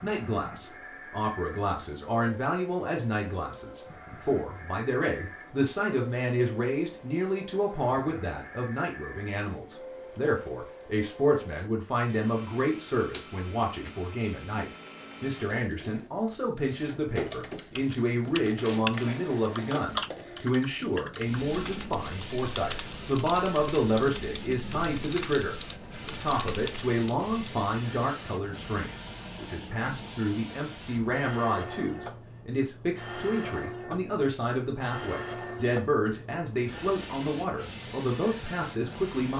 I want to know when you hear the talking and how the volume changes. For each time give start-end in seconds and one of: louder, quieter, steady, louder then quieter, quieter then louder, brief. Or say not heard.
0.0-39.3 steady.